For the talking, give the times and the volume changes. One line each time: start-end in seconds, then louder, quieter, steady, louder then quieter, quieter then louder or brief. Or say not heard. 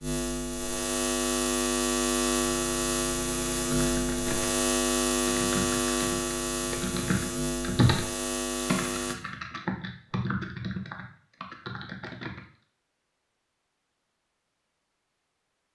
not heard.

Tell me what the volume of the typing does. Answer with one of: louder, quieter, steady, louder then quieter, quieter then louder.
louder then quieter.